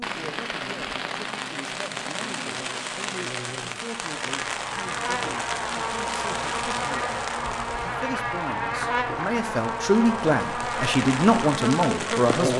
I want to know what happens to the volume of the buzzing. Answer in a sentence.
The loudness of the buzzing goes up.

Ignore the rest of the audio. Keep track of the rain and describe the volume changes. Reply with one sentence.
The volume of the rain goes down, then up.